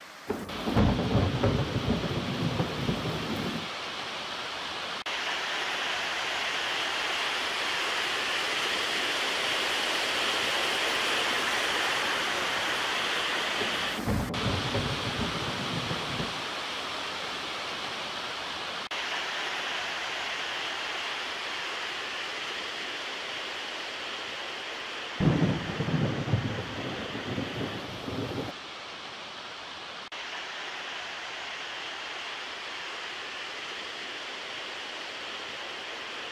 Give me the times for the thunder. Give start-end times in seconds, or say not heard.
0.2-3.7, 13.6-16.4, 25.2-28.5.